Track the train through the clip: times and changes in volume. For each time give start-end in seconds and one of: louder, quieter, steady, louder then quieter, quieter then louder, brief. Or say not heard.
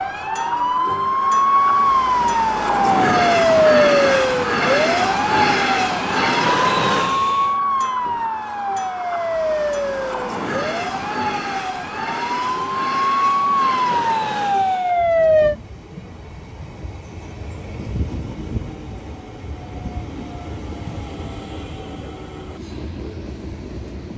0.0-24.1 quieter.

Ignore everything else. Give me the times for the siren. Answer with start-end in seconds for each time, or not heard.
0.0-15.6.